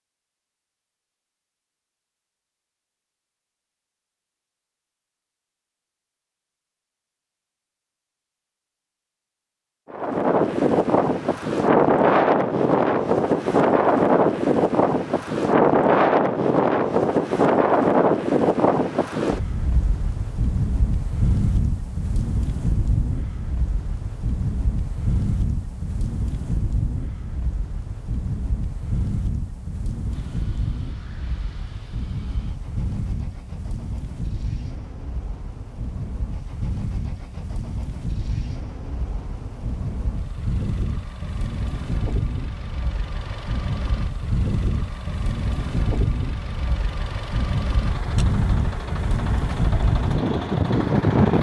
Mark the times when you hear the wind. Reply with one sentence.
You can hear the wind from 9.9 to 51.3 s.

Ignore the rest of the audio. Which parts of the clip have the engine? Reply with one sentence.
The engine can be heard from 30.1 to 51.3 s.